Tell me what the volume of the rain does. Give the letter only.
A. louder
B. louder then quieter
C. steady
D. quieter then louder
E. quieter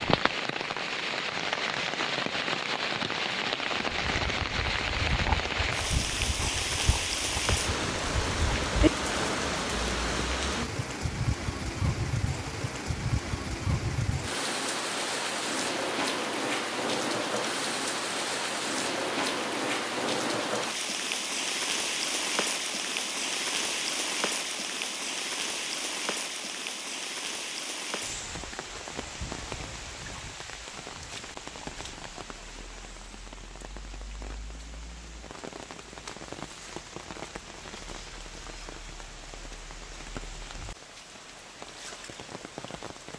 E.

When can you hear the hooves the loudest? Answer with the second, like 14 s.
9 s.